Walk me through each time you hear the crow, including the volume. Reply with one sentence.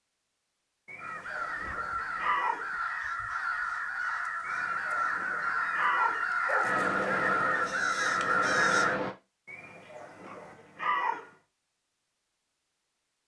You can hear the crow from 0.9 to 9.0 s, getting louder.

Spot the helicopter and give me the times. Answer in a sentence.
The helicopter can be heard from 6.6 to 9.2 s.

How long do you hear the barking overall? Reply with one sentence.
The barking can be heard for 6 seconds in total.